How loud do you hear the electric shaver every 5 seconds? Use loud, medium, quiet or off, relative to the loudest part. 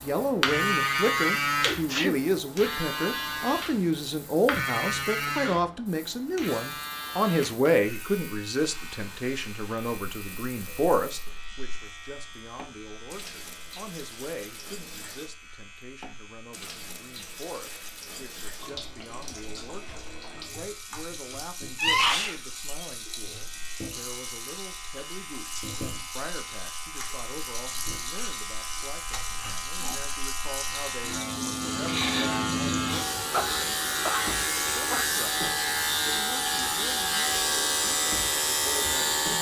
loud, medium, quiet, quiet, quiet, quiet, loud, loud.